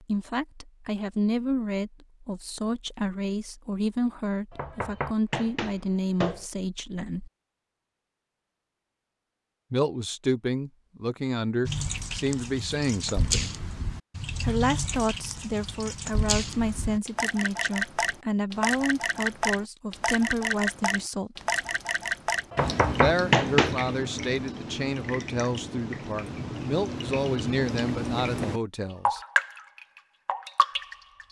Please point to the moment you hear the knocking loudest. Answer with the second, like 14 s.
23 s.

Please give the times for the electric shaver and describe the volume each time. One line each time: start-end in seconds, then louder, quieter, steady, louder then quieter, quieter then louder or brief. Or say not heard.
not heard.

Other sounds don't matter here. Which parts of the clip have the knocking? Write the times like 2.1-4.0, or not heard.
4.5-6.5, 22.5-23.9.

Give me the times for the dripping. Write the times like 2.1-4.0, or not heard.
11.7-31.2.